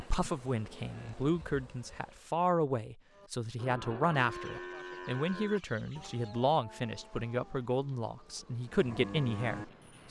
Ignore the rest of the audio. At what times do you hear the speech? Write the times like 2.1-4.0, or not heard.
0.0-10.0.